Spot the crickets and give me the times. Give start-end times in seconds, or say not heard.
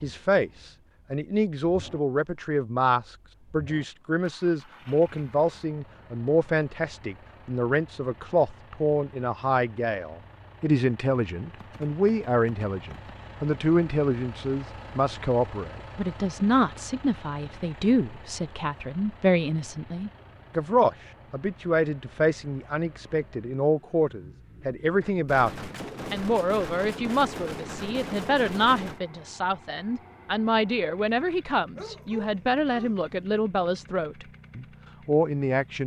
not heard.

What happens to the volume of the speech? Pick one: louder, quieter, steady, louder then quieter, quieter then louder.
steady.